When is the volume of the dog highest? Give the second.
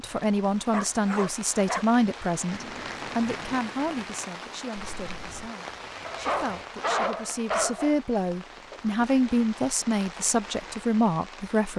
7 s.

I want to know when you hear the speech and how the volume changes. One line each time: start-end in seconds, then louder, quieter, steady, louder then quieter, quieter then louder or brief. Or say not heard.
0.0-11.7 quieter then louder.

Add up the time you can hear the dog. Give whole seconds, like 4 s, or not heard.
3 s.